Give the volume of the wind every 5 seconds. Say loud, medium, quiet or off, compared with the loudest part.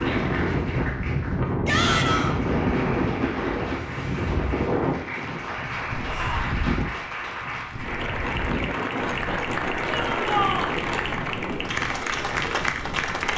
loud, medium, quiet.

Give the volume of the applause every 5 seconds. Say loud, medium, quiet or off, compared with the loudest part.
medium, loud, loud.